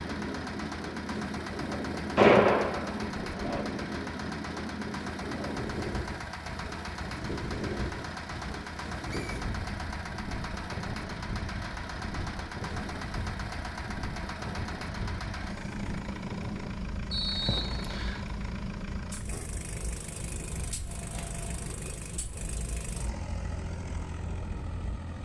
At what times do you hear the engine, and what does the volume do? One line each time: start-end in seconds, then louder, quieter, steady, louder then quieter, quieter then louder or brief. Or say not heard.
0.0-25.2 steady.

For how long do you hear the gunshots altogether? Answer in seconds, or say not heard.
2 s.